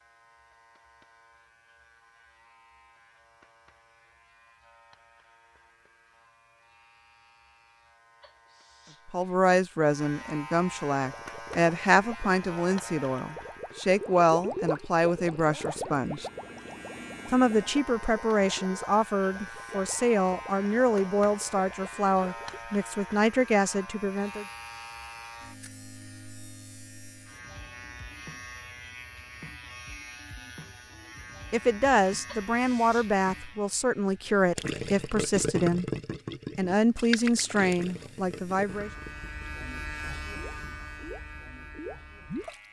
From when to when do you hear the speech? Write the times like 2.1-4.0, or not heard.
9.1-16.2, 17.2-24.4, 31.5-35.9, 36.5-38.9.